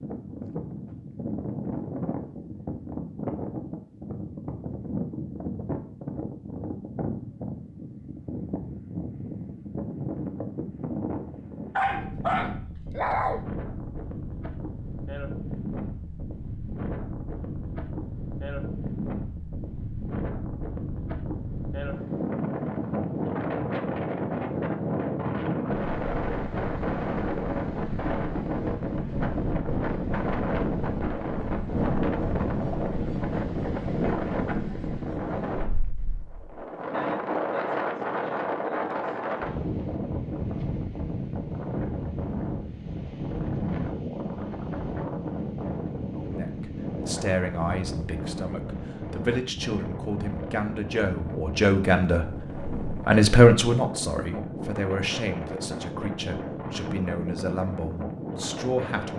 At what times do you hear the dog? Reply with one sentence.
The dog can be heard from 11.8 to 13.4 s.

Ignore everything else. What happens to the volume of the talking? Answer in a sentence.
The loudness of the talking goes up, then down.